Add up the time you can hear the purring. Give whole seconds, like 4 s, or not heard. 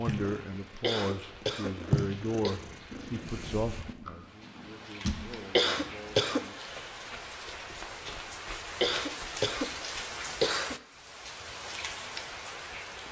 6 s.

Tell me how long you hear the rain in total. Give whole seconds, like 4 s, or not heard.
13 s.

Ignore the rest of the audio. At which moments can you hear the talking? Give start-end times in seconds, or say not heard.
0.0-6.5.